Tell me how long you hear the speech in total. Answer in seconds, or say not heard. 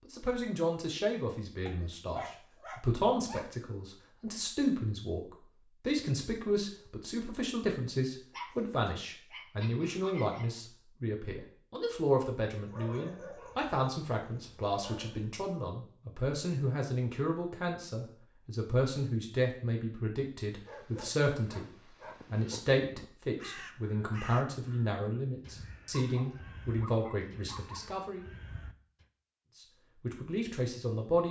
29 s.